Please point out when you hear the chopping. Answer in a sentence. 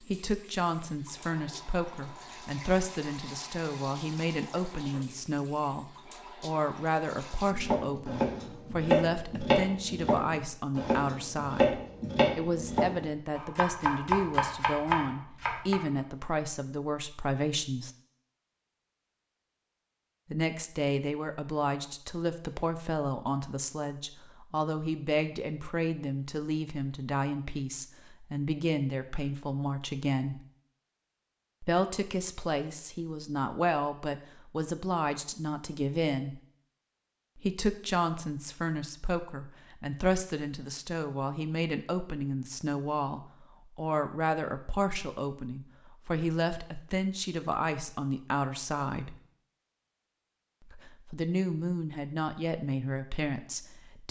The chopping can be heard from 7.5 to 15.8 s.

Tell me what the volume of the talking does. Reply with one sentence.
The loudness of the talking stays about the same.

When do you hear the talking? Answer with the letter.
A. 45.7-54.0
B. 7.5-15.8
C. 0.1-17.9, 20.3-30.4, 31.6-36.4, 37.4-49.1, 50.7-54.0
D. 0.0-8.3
C.